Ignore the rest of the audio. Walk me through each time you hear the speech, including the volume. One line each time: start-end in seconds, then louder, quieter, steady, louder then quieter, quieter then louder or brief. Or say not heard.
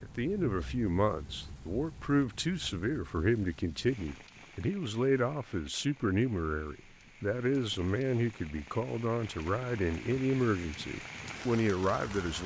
0.0-12.4 steady.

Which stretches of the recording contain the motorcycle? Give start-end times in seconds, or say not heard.
not heard.